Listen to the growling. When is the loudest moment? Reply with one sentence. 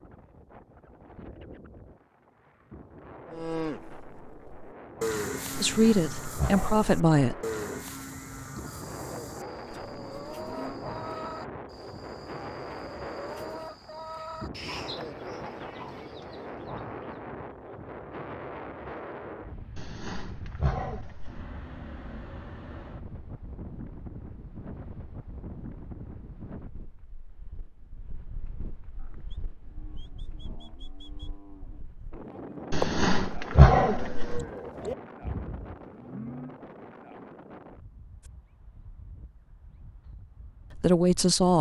The loudest moment of the growling is at 34 seconds.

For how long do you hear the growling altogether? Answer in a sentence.
You can hear the growling for 5 seconds altogether.